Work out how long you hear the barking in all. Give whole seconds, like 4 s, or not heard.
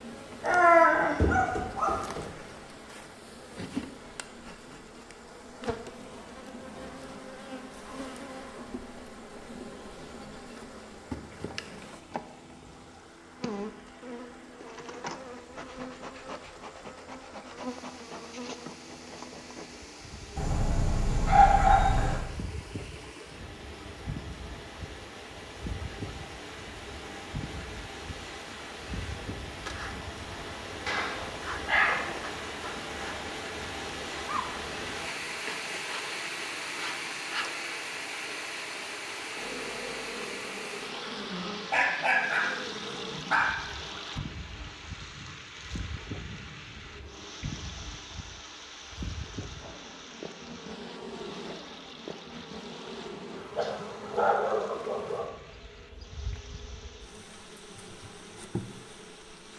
9 s.